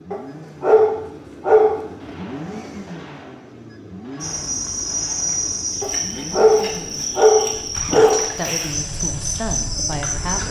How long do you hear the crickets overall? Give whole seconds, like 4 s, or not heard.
6 s.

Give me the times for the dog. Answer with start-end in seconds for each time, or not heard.
0.1-1.9, 5.8-8.3.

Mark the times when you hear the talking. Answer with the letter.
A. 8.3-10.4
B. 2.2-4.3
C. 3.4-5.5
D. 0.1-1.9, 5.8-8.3
A.